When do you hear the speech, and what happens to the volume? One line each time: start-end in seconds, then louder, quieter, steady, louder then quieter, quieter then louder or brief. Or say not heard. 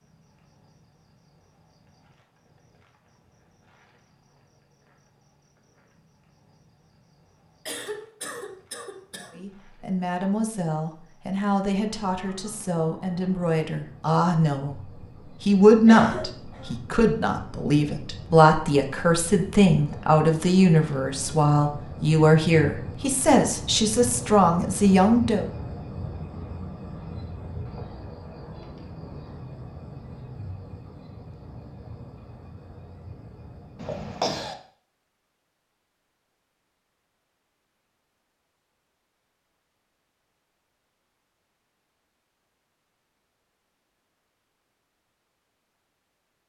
9.3-25.4 louder.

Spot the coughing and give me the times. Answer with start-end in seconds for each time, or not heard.
7.7-9.4, 15.8-16.8, 33.8-34.5.